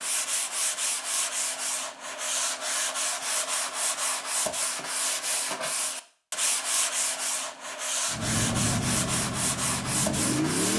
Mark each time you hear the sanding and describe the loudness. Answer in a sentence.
You can hear the sanding from 0.0 to 10.7 s, at a steady volume.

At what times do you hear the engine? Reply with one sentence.
You can hear the engine from 8.1 to 10.7 s.